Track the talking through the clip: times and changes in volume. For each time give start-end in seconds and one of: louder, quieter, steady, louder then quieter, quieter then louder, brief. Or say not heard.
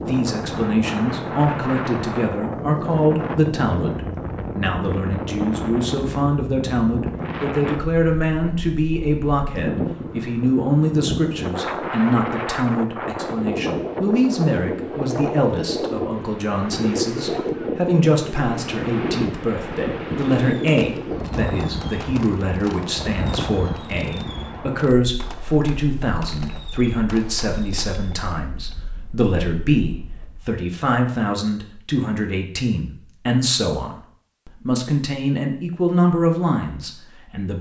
0.0-37.5 steady.